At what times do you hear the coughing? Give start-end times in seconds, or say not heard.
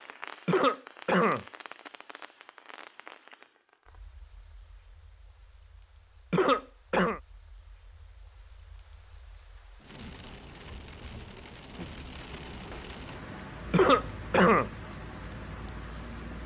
0.5-1.4, 6.3-7.2, 13.7-14.7.